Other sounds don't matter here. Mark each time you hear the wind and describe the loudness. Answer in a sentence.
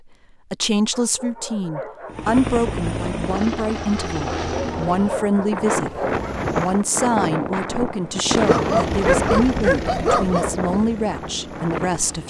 You can hear the wind from 5.0 to 12.2 s, getting quieter.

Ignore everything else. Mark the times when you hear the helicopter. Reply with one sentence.
The helicopter can be heard from 2.0 to 6.8 s and from 8.2 to 12.2 s.